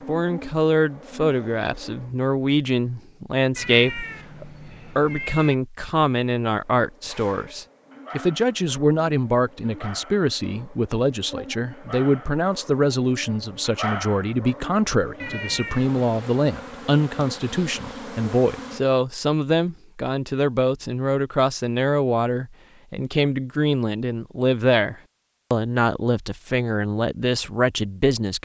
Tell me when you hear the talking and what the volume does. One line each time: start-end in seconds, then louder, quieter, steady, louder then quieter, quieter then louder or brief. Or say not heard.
0.1-28.3 steady.